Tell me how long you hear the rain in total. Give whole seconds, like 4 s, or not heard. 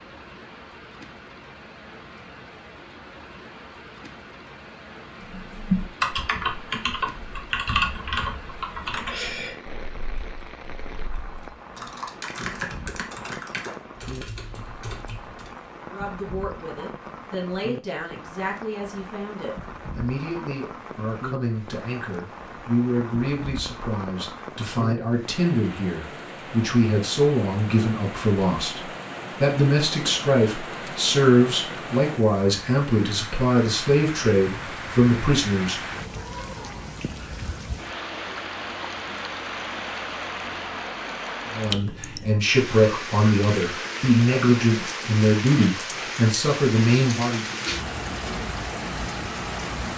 50 s.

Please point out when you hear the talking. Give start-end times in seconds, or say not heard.
15.9-35.8, 41.5-47.4.